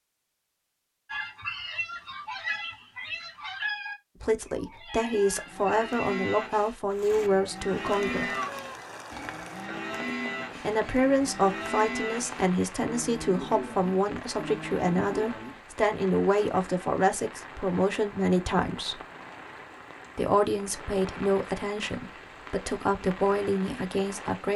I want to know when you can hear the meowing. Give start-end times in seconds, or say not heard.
7.9-8.8.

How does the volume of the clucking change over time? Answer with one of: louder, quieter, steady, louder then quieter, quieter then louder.
quieter then louder.